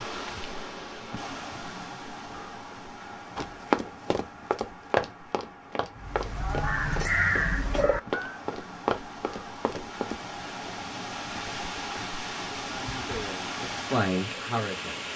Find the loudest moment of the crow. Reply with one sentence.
The volume of the crow peaks at 7 seconds.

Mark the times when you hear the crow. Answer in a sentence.
The crow can be heard from 6.0 to 8.4 s.